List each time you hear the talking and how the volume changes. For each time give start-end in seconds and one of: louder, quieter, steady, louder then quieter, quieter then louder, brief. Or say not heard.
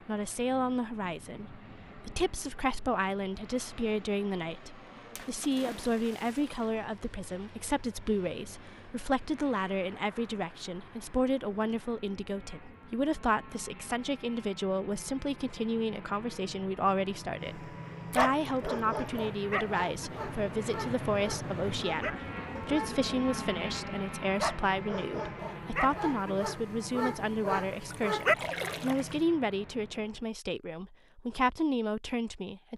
0.1-32.7 steady.